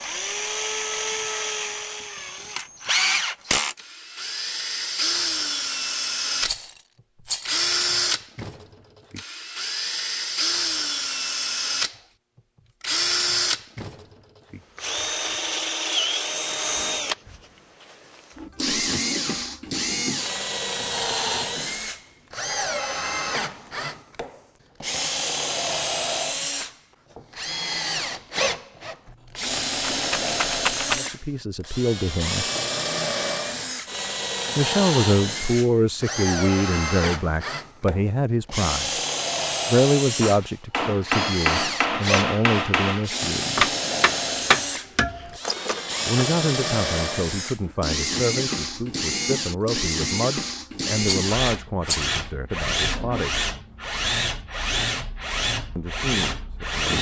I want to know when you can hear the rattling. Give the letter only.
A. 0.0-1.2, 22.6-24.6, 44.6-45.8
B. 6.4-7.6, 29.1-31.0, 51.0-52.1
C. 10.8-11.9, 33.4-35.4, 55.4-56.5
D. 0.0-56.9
B.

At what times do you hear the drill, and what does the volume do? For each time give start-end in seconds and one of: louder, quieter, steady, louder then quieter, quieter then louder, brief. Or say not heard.
0.0-56.9 steady.